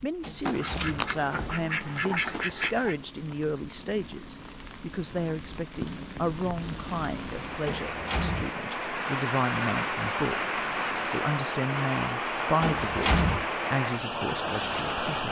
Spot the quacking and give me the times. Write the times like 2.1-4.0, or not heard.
0.4-3.0.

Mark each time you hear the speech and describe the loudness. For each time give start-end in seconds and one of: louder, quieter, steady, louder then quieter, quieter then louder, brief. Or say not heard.
0.0-15.2 steady.